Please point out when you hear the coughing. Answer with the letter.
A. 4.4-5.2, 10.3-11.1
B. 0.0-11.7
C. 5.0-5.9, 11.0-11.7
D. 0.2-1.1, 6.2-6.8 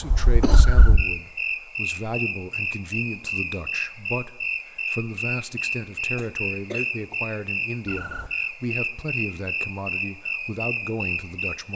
D.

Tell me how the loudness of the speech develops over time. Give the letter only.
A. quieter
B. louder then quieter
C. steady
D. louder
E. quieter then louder
C.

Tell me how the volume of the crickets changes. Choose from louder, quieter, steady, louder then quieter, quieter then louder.
steady.